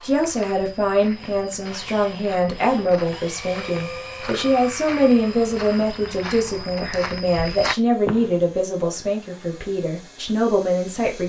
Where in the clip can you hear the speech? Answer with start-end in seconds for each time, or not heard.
0.0-11.2.